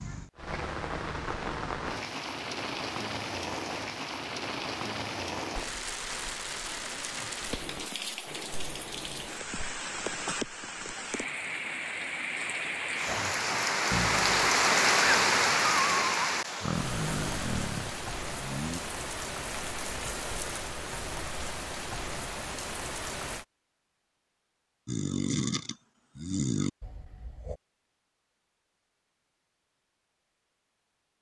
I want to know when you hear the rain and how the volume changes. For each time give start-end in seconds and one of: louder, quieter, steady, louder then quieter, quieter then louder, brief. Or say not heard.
0.0-23.4 louder then quieter.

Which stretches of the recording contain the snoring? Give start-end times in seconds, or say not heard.
13.1-18.8, 24.9-27.6.